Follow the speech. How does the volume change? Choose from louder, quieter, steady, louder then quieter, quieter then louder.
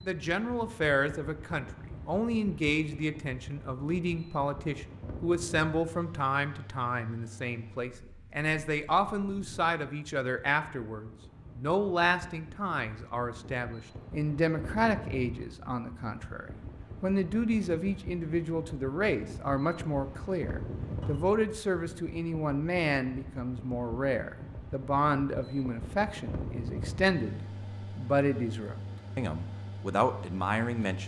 steady.